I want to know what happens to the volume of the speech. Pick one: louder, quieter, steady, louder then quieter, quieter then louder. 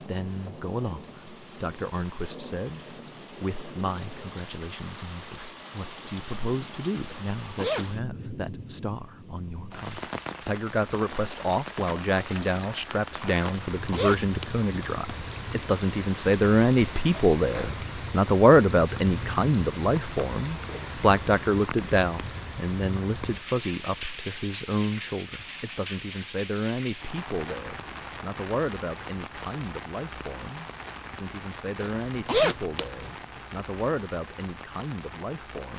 louder then quieter.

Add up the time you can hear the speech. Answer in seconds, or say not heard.
36 s.